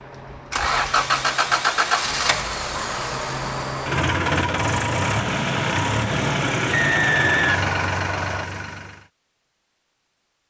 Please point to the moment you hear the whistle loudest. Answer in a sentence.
The loudest moment of the whistle is at 7 seconds.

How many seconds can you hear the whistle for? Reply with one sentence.
The whistle can be heard for 2 seconds in total.